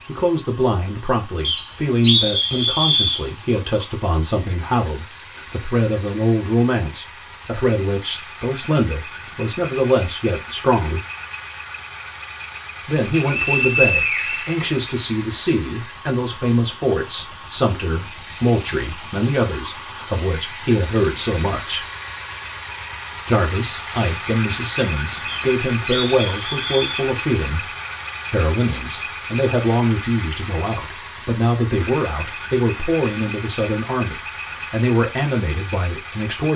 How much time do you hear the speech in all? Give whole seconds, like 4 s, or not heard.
33 s.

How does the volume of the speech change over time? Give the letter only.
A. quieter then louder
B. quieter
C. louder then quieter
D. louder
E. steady
E.